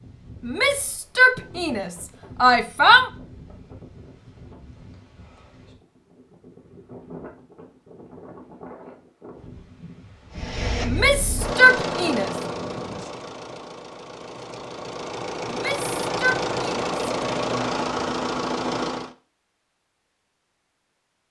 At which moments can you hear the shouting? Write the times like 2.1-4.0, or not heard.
0.5-3.1, 10.8-12.3, 15.4-16.9.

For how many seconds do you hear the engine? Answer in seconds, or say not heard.
9 s.